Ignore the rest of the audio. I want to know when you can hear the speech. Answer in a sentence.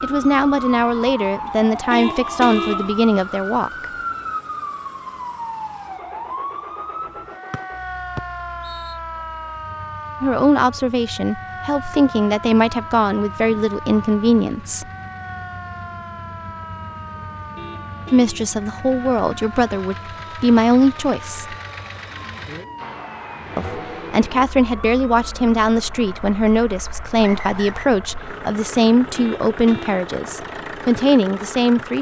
You can hear the speech from 0.0 to 3.9 s, from 10.2 to 14.8 s, from 18.1 to 21.6 s and from 23.6 to 31.9 s.